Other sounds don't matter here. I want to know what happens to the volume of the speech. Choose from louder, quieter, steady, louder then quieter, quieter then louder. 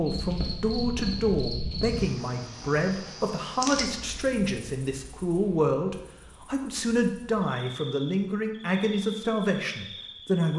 steady.